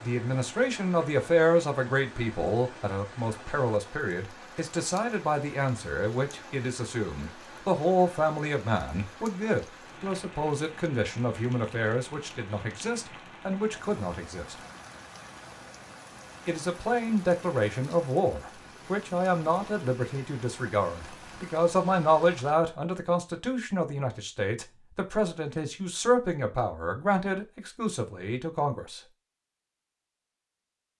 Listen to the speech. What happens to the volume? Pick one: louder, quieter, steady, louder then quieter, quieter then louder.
steady.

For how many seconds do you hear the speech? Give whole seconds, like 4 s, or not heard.
27 s.